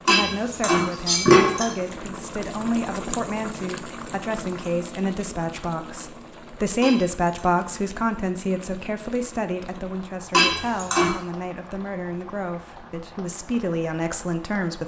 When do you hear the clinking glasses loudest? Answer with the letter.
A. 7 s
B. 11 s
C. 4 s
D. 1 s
D.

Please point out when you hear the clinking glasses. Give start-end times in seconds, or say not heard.
0.1-1.7, 6.8-7.5, 10.3-11.2.